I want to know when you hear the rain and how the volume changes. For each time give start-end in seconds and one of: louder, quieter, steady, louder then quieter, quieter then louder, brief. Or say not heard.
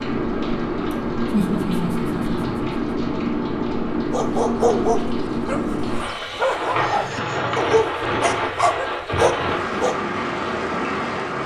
0.0-11.4 steady.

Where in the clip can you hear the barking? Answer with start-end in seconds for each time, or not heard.
4.1-9.9.